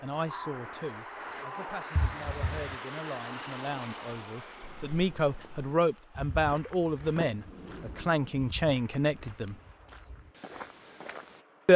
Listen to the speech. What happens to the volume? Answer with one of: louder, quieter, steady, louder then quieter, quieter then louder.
louder.